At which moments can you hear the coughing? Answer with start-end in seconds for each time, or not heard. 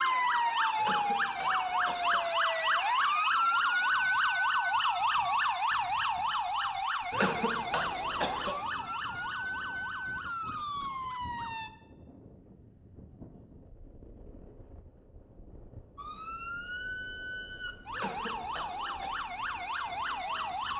0.8-2.2, 7.1-8.6, 17.9-19.1.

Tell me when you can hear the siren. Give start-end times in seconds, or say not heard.
0.0-11.7, 15.9-20.7.